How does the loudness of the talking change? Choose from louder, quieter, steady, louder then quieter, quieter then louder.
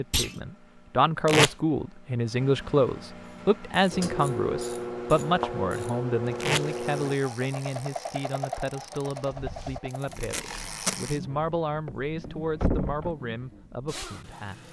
quieter.